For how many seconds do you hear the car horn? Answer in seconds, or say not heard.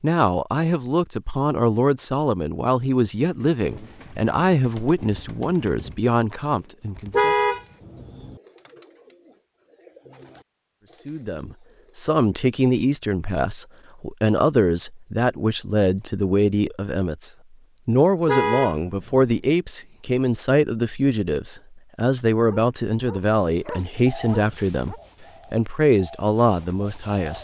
2 s.